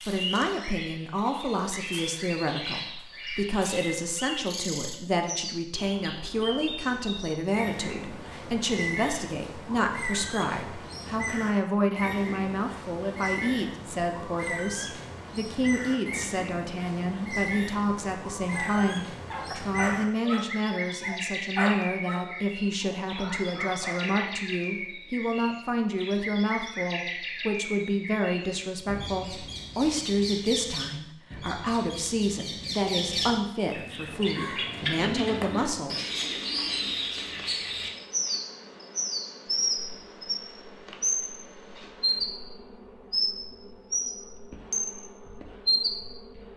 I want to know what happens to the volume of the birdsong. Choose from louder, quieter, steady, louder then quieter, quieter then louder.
louder.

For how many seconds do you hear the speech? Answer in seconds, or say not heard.
36 s.